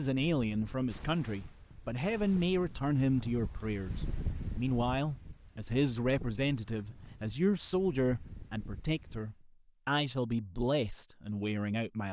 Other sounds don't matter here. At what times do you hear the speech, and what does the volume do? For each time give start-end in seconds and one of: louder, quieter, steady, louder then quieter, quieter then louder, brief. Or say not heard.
0.0-12.0 steady.